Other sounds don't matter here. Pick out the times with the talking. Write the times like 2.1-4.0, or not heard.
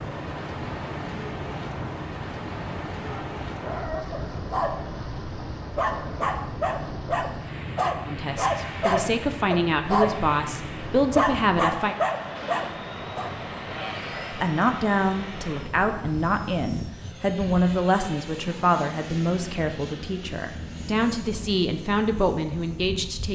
8.1-11.9, 14.3-23.2.